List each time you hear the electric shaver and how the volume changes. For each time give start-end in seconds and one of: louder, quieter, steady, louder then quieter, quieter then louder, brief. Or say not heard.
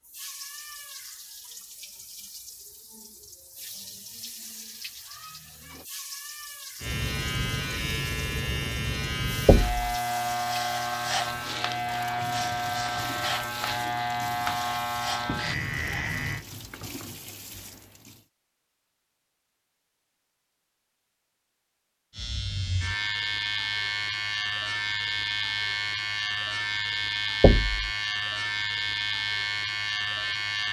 6.8-16.4 steady
22.1-30.6 steady.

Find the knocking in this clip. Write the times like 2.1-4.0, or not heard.
9.4-9.8, 27.4-27.9.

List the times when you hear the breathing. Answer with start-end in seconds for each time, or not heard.
not heard.